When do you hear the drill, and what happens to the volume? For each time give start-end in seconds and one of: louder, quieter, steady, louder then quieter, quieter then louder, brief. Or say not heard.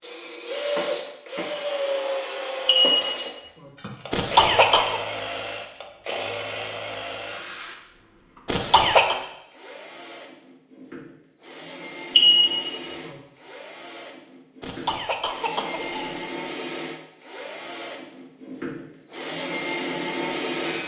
0.0-20.8 quieter then louder.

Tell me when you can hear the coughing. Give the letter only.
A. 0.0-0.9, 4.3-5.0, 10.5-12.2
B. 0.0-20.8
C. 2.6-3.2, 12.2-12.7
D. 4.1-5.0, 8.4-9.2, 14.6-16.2
D.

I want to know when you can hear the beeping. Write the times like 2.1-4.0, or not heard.
2.6-3.2, 12.2-12.7.